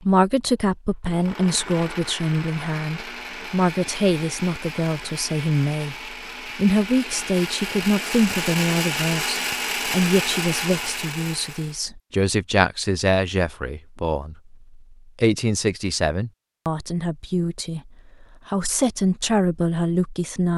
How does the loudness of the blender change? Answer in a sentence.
The loudness of the blender goes up.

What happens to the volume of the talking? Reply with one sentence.
The volume of the talking stays about the same.